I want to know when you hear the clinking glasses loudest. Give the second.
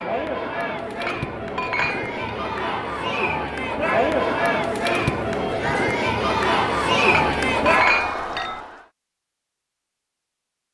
8 s.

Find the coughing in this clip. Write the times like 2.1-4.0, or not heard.
not heard.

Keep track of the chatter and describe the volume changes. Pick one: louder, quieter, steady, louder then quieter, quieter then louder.
louder.